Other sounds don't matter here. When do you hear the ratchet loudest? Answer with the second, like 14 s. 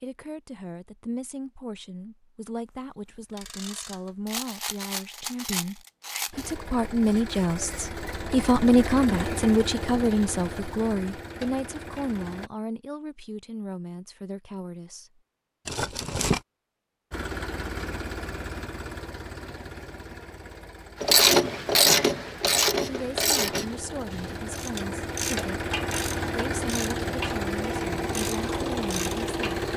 21 s.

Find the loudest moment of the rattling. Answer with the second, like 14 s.
16 s.